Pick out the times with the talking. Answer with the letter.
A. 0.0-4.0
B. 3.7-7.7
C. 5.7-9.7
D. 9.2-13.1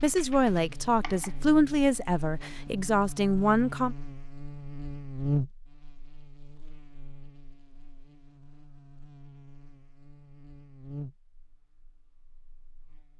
A.